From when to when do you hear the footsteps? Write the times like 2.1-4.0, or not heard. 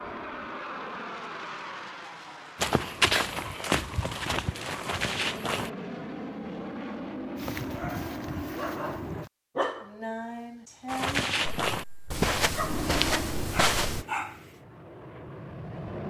2.5-5.7, 10.8-14.1.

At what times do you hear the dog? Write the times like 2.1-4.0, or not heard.
7.3-14.6.